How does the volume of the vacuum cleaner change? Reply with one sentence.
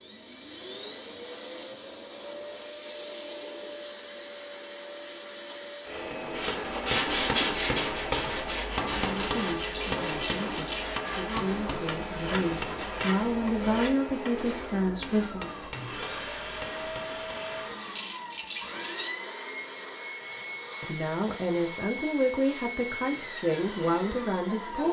The volume of the vacuum cleaner stays about the same.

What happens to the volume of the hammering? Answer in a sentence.
The volume of the hammering goes down.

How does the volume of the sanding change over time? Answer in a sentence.
The volume of the sanding goes down.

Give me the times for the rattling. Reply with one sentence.
You can hear the rattling from 9.0 to 10.9 s and from 17.8 to 19.1 s.